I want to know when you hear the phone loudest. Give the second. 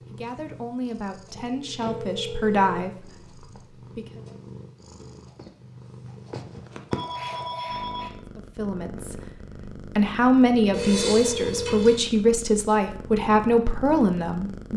11 s.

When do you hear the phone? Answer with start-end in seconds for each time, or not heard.
1.4-2.8, 6.9-8.1, 10.7-12.0.